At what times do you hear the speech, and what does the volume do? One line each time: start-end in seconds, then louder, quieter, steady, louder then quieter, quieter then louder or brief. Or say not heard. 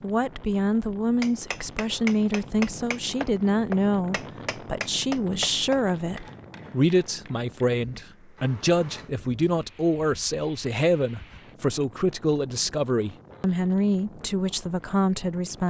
0.0-15.6 steady.